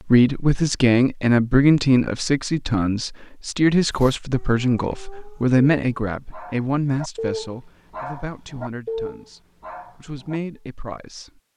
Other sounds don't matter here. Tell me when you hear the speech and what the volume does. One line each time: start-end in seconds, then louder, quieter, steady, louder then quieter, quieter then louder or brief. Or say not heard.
0.1-11.3 quieter.